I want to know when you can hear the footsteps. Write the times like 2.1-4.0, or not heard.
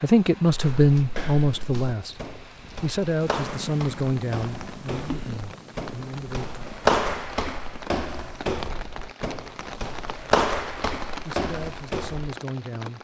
0.5-12.3.